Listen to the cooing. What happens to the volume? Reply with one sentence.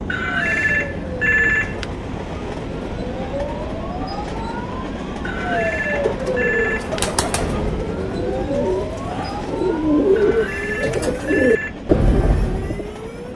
The volume of the cooing goes up.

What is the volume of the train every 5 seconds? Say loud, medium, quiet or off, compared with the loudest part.
loud, loud, medium.